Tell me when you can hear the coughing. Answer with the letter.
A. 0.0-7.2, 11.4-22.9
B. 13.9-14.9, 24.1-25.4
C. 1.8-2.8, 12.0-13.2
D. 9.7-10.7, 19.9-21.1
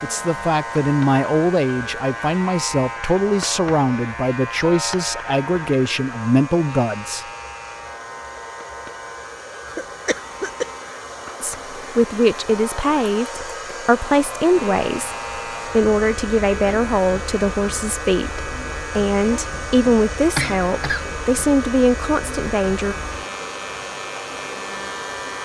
D.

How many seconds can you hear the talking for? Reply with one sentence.
The talking can be heard for 19 seconds in total.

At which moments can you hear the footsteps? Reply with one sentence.
The footsteps can't be heard in this clip.